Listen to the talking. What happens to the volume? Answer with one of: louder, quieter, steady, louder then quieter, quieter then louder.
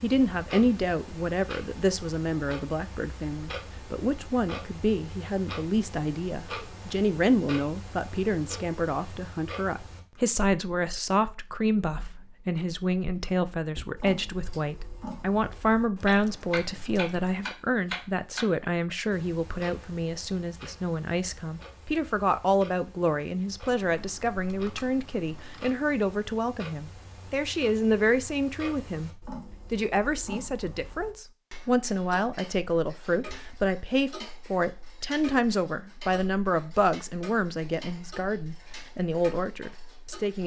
steady.